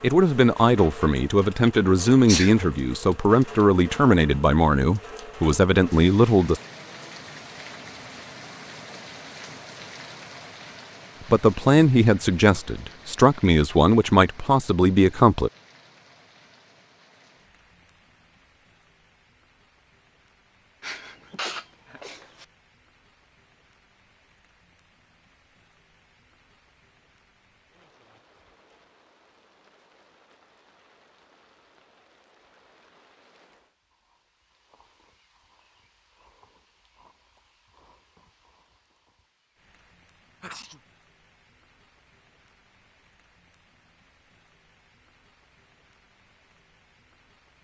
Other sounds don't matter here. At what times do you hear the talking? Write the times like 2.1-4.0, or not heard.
0.0-6.6, 11.3-15.5.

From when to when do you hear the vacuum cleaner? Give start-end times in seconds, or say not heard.
not heard.